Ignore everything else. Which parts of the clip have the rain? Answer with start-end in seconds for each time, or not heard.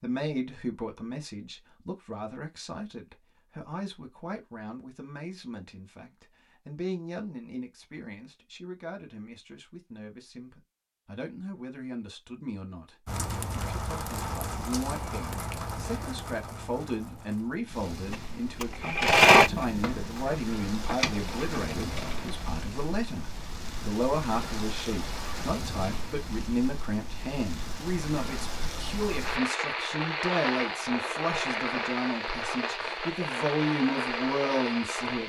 13.1-35.2.